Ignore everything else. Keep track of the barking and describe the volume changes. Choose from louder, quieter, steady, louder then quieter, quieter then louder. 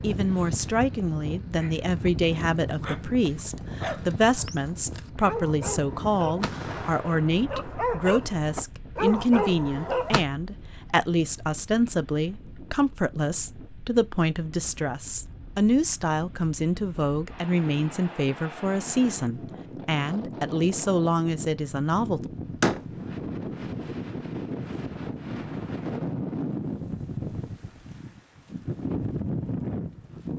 louder.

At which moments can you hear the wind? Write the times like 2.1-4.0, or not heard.
0.0-30.3.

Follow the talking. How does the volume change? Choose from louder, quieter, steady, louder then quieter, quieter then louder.
steady.